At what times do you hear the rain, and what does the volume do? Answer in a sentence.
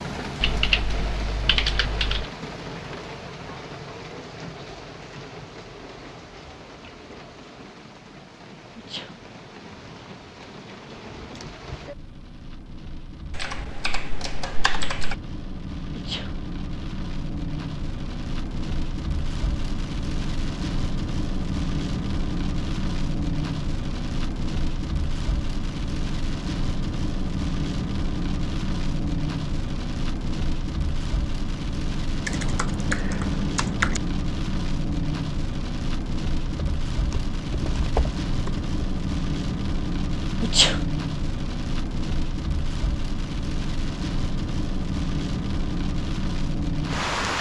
The rain can be heard from 0.0 to 47.3 s, getting louder.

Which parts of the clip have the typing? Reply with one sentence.
The typing can be heard from 0.4 to 2.2 s, from 13.3 to 15.2 s, from 32.2 to 34.0 s and from 36.5 to 38.7 s.